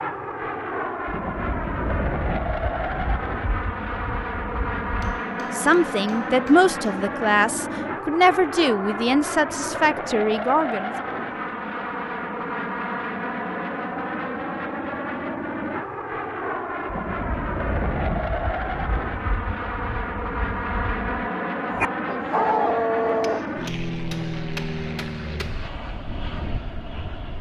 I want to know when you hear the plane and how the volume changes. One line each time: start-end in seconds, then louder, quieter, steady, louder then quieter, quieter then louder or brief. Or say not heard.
0.0-27.3 steady.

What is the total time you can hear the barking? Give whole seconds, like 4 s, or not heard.
2 s.